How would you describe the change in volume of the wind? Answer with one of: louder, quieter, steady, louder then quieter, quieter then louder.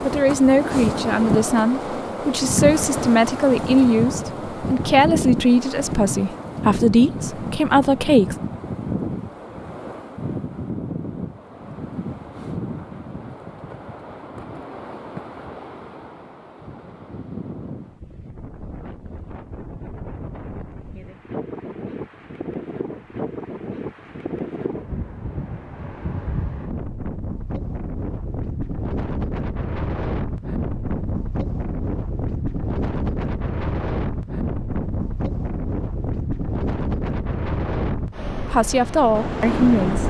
quieter then louder.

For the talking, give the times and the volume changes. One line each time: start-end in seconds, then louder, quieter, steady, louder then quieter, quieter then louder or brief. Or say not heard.
0.0-8.3 steady
38.5-40.0 brief.